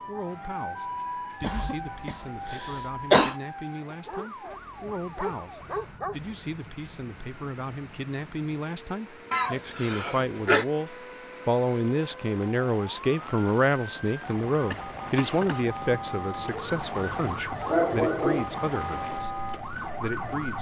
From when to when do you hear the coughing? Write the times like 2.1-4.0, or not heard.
1.4-3.4, 9.3-10.7, 14.7-15.8.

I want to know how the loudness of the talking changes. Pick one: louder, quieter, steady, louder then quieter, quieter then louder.
louder then quieter.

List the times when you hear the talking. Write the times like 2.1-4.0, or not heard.
0.1-20.5.